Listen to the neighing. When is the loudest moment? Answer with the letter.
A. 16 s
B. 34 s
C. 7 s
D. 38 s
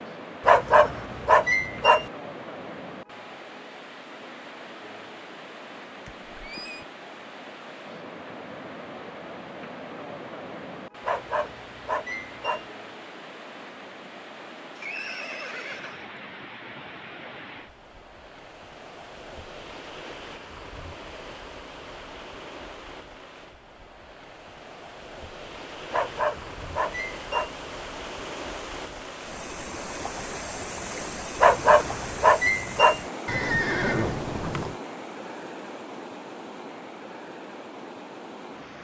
B.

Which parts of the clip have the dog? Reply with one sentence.
The dog can be heard from 0.5 to 2.0 s, from 11.1 to 12.7 s, from 25.9 to 27.6 s and from 31.4 to 33.0 s.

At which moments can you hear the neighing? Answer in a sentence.
The neighing can be heard from 6.0 to 6.8 s, from 14.8 to 16.1 s and from 33.2 to 34.8 s.